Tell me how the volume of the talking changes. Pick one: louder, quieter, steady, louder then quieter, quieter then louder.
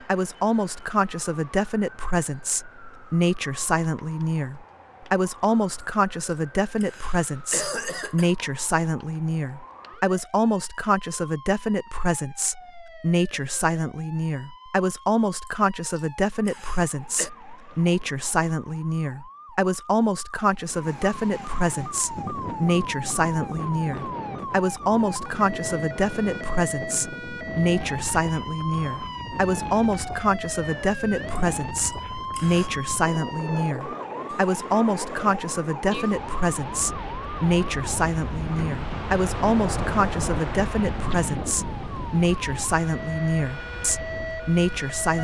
steady.